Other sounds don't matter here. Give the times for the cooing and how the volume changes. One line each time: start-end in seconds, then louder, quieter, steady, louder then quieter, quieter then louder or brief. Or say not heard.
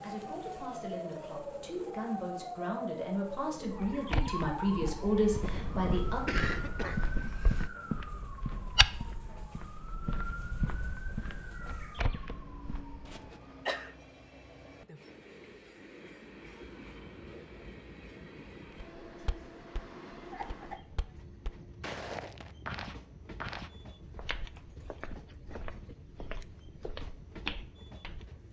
not heard.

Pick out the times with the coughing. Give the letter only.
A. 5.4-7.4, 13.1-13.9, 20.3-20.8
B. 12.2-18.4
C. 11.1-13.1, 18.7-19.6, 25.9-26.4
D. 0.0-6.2
A.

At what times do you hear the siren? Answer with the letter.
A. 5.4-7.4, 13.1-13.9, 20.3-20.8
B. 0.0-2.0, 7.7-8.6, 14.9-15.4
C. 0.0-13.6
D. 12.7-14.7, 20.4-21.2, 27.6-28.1
C.